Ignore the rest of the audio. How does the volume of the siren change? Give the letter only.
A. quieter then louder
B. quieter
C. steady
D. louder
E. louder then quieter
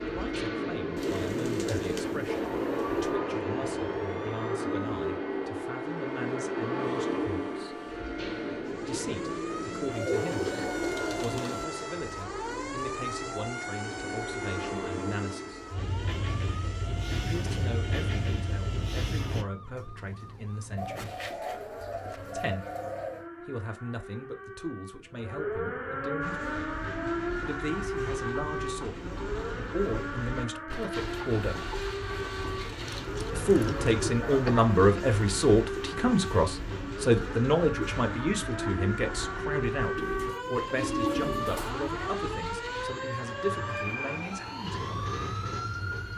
D.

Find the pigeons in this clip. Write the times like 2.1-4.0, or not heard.
0.9-3.2, 9.9-11.7, 20.8-23.3, 32.4-34.2, 40.0-41.7.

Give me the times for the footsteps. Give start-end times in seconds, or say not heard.
not heard.